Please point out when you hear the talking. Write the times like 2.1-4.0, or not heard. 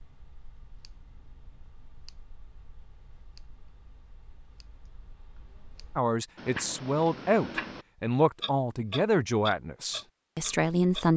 6.0-11.1.